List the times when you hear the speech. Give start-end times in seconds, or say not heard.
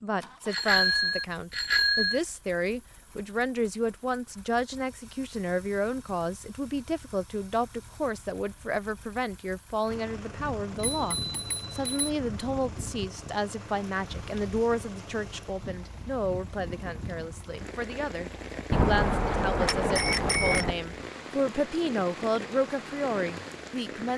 0.0-24.1.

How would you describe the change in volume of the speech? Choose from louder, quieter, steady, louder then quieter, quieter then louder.
steady.